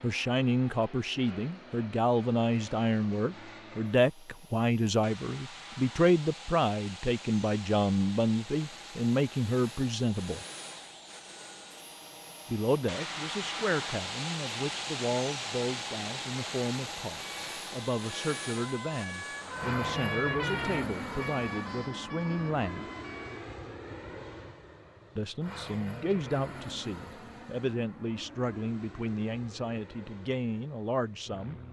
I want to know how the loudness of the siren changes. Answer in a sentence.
The loudness of the siren goes up, then down.